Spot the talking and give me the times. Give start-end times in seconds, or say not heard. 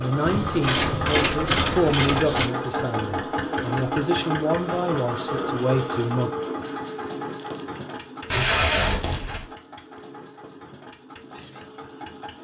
0.0-6.3.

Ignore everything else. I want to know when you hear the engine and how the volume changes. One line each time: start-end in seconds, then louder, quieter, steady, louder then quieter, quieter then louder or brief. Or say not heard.
0.0-12.3 quieter.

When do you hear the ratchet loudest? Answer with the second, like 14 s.
2 s.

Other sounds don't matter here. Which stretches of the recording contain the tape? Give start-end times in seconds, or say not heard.
8.3-9.4.